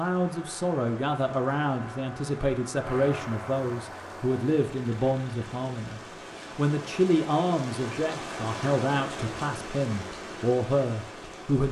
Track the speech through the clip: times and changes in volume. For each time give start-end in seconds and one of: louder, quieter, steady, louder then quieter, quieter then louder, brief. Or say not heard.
0.0-11.6 steady.